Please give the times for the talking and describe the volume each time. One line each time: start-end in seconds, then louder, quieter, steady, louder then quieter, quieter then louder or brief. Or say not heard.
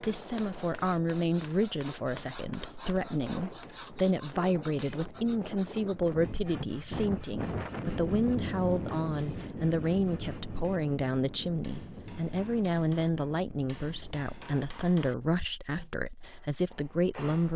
0.0-17.5 steady.